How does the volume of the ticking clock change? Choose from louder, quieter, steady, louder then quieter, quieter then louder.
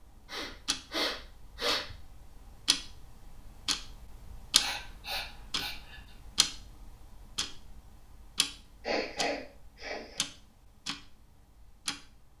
louder then quieter.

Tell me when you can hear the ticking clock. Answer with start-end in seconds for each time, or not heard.
0.0-12.3.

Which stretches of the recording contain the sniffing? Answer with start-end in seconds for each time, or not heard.
0.3-1.9, 4.6-6.0, 8.8-10.2.